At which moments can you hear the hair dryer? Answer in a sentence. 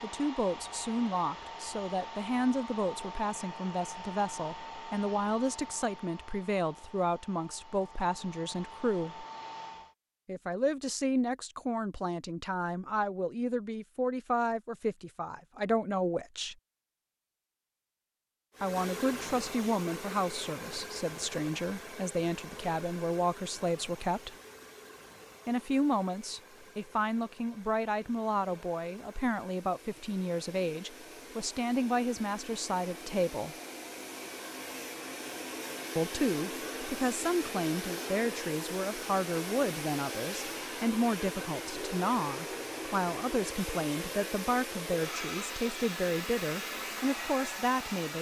The hair dryer can be heard from 0.0 to 9.9 s and from 18.5 to 48.1 s.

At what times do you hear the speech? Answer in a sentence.
The speech can be heard from 0.0 to 9.2 s, from 10.2 to 16.6 s, from 18.6 to 24.4 s, from 25.4 to 33.5 s and from 36.0 to 48.1 s.